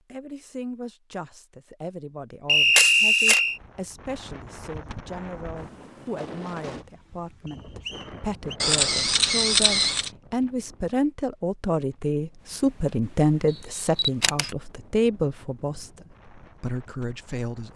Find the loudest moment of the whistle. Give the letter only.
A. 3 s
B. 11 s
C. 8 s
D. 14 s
A.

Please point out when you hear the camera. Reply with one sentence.
You can hear the camera from 2.8 to 3.4 s, from 8.6 to 10.1 s and from 13.9 to 14.5 s.